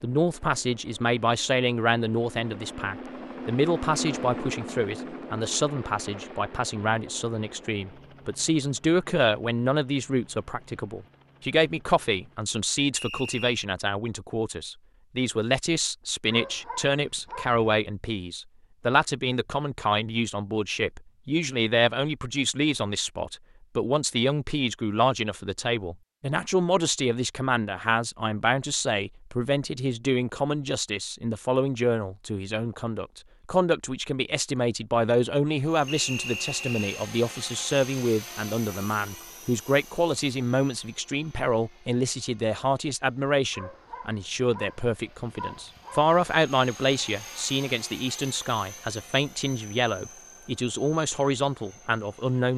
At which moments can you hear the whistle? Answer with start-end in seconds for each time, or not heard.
12.9-13.6, 35.9-37.0.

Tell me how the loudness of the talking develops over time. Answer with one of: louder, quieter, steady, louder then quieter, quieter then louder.
steady.